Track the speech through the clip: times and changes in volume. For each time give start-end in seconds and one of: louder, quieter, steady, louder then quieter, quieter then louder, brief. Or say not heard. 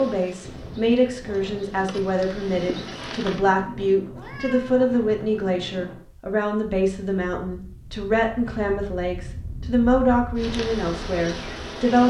0.0-12.0 steady.